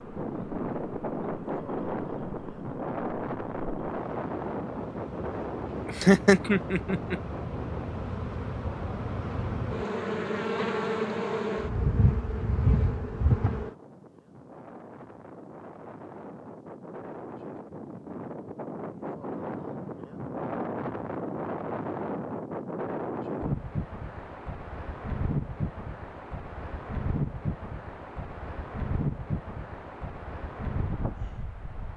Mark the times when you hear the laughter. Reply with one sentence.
The laughter can be heard from 5.8 to 7.2 s.